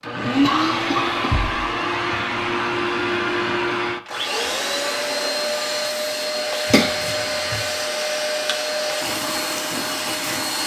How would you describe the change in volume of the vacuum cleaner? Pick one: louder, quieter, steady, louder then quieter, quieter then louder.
steady.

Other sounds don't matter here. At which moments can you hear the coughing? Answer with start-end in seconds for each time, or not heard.
0.2-1.4, 6.7-7.7.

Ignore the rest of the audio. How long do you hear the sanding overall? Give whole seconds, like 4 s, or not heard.
not heard.